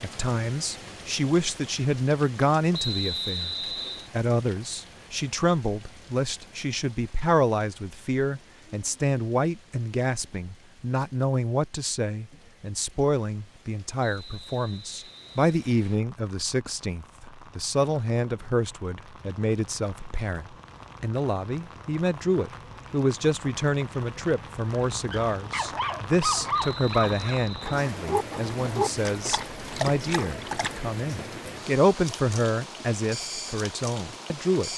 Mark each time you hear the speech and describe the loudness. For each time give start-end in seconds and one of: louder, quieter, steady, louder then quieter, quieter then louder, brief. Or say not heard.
0.0-34.7 steady.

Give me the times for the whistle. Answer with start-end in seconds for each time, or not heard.
2.7-4.1, 14.0-16.0, 26.5-27.6.